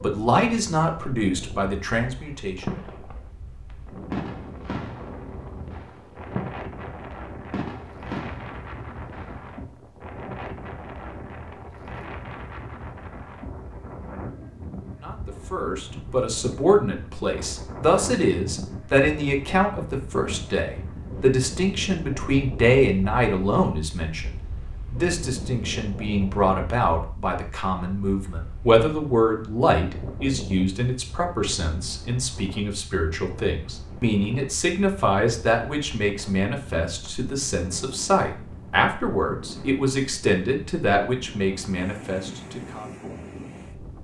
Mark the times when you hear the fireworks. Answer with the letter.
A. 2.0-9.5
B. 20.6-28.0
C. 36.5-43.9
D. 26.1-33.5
A.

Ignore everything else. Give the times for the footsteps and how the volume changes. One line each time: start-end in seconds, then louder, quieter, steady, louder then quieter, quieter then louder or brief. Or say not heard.
not heard.